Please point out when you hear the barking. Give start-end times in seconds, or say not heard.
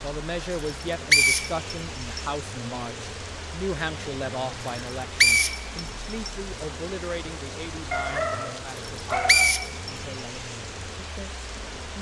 7.9-9.8.